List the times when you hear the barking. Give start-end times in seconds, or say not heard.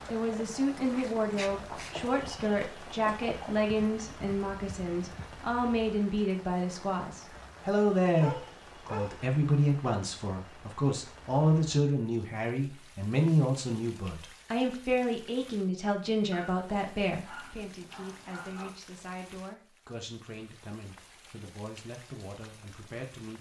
0.9-1.9, 8.1-9.2, 16.3-18.8.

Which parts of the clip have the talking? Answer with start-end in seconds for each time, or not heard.
0.1-23.3.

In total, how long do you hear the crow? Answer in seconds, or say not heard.
not heard.